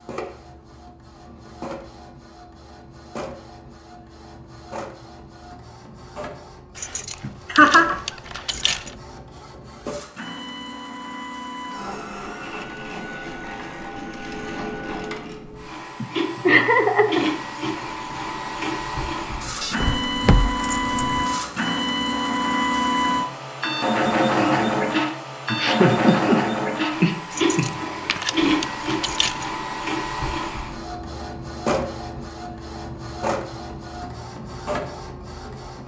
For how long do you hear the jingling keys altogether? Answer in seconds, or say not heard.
6 s.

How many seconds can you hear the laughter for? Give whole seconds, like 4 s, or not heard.
5 s.